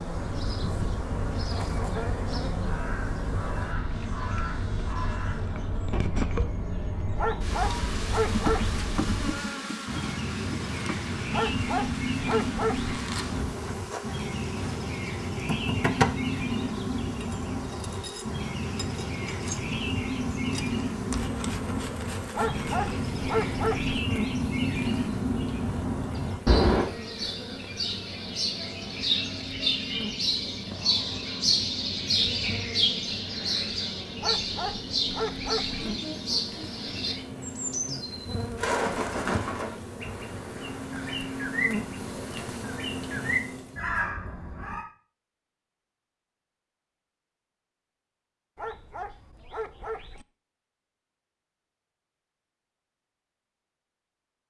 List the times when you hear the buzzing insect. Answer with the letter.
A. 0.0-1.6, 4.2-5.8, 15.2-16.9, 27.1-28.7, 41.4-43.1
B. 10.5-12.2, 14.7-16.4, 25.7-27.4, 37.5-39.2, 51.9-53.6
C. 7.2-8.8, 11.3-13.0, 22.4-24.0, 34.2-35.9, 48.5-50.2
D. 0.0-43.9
D.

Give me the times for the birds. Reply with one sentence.
The birds can be heard from 0.0 to 44.9 s.